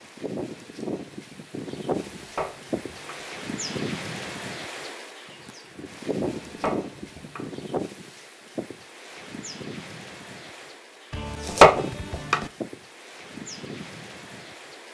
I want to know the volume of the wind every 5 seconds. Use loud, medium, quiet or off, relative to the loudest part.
loud, loud, medium.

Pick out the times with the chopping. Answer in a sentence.
You can hear the chopping from 2.1 to 3.2 s, from 6.4 to 7.5 s and from 11.1 to 12.4 s.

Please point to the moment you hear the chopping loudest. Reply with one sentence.
The volume of the chopping peaks at 12 seconds.